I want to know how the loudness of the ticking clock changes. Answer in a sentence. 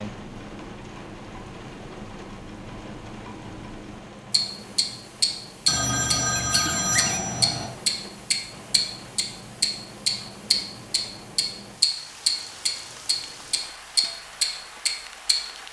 The volume of the ticking clock goes up.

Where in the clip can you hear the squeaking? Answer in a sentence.
The squeaking can be heard from 6.4 to 7.2 s.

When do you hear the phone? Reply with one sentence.
You can hear the phone from 5.7 to 7.7 s.